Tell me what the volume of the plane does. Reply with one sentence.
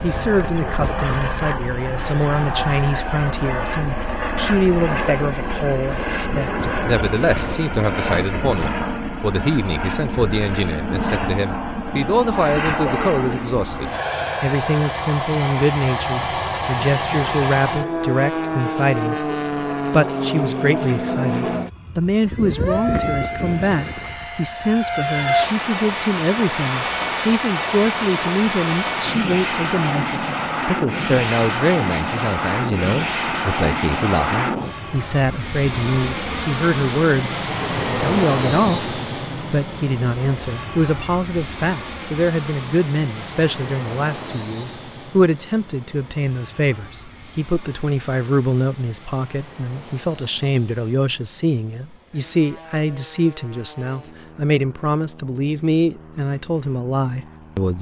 The loudness of the plane goes down.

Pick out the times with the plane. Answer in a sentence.
The plane can be heard from 0.0 to 57.7 s.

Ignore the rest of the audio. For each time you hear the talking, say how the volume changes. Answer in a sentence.
The talking can be heard from 0.0 to 19.2 s, at a steady volume; and from 19.9 to 57.7 s, at a steady volume.